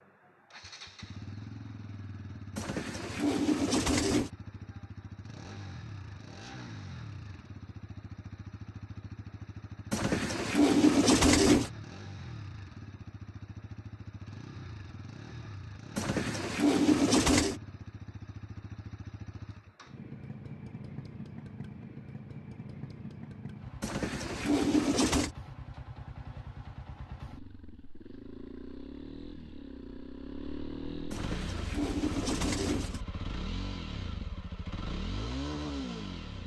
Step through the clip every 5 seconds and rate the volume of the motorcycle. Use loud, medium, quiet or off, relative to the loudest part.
medium, medium, medium, medium, medium, medium, loud, loud.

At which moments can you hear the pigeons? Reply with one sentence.
You can hear the pigeons from 2.5 to 4.3 s, from 9.9 to 11.7 s, from 15.9 to 17.6 s, from 23.8 to 25.3 s and from 31.1 to 33.0 s.